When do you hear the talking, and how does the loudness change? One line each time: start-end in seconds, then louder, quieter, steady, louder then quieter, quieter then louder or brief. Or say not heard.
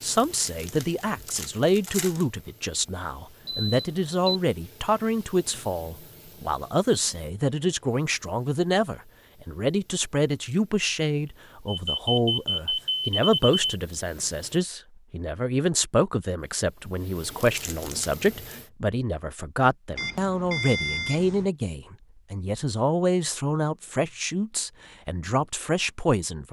0.0-26.4 steady.